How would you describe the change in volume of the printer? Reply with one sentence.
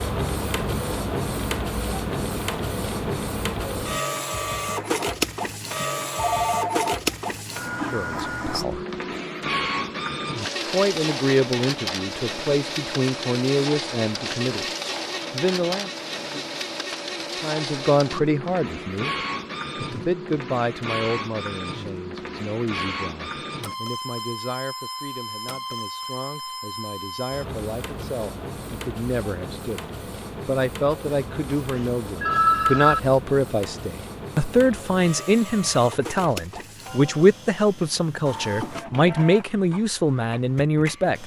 The loudness of the printer goes down.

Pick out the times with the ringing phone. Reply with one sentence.
You can hear the ringing phone from 6.2 to 7.0 s and from 31.1 to 33.0 s.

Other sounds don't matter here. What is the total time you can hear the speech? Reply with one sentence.
The speech can be heard for 29 seconds in total.